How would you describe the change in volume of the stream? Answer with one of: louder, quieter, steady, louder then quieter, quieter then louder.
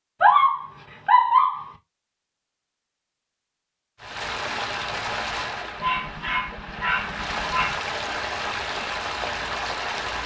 quieter then louder.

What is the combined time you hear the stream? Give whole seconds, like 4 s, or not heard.
6 s.